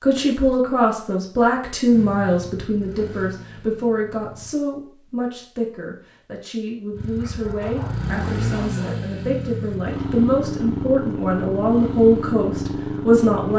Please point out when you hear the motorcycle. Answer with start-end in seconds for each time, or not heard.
1.9-4.5, 6.9-13.5.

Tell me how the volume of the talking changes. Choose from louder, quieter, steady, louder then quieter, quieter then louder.
quieter then louder.